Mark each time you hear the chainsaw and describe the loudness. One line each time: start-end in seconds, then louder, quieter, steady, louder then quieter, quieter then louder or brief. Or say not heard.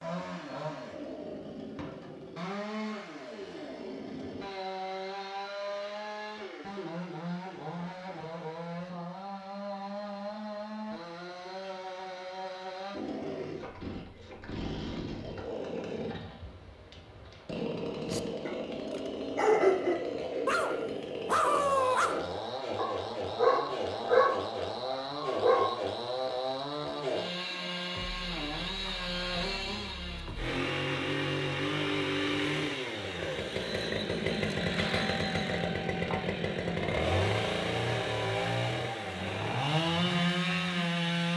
0.0-41.3 louder.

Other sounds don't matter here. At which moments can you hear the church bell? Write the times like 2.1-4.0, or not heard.
not heard.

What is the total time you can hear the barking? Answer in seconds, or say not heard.
7 s.